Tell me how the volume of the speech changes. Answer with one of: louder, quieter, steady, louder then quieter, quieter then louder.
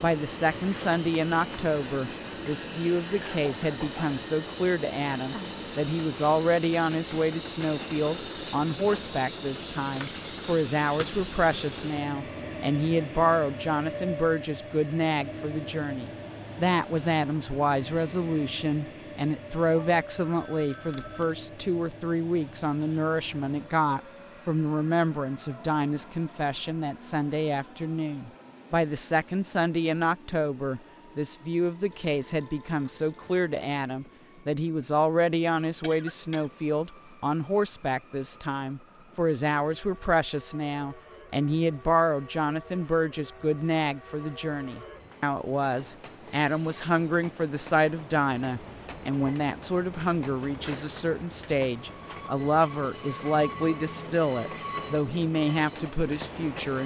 steady.